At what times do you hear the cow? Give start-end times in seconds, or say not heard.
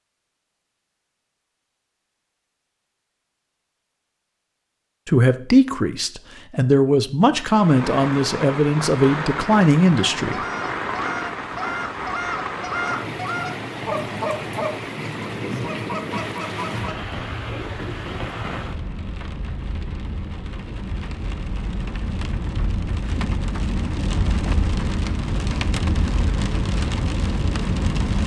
not heard.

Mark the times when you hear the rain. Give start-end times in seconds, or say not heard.
7.3-28.2.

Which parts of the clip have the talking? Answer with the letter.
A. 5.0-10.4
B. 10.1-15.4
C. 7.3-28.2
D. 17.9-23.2
A.